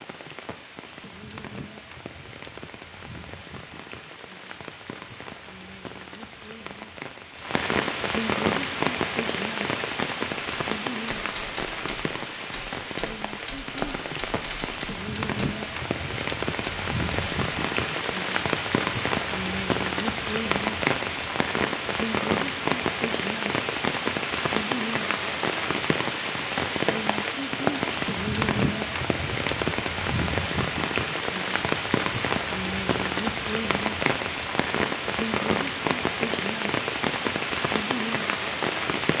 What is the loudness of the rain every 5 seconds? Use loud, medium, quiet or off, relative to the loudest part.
quiet, loud, medium, loud, loud, loud, loud, loud.